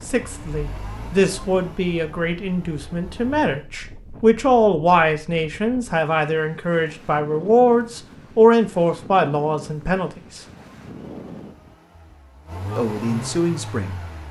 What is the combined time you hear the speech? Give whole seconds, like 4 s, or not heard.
12 s.